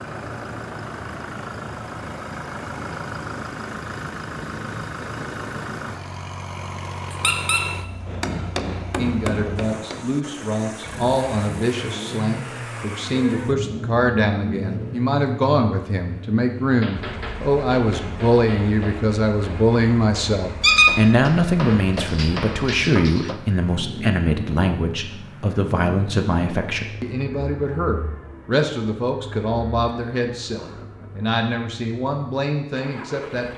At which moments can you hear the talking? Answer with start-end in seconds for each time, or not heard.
8.9-33.5.